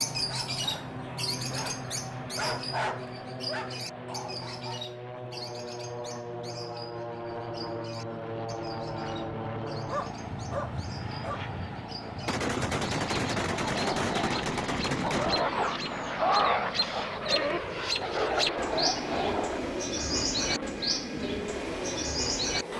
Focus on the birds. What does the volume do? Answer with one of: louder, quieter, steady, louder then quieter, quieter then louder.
quieter then louder.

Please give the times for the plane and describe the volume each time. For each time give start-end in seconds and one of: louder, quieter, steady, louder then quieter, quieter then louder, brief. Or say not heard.
0.0-22.7 steady.